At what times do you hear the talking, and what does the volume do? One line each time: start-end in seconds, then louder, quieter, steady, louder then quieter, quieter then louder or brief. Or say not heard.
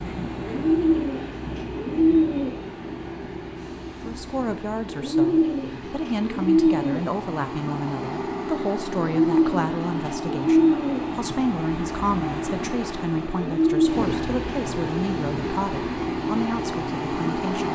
4.0-17.6 steady.